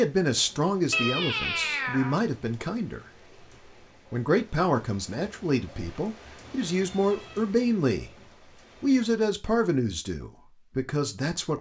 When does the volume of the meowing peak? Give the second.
1 s.